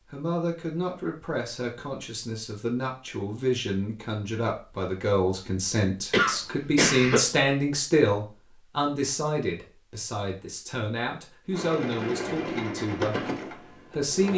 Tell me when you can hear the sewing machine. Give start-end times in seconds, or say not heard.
11.5-14.3.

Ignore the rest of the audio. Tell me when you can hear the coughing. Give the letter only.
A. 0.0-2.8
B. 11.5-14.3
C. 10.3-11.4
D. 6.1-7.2
D.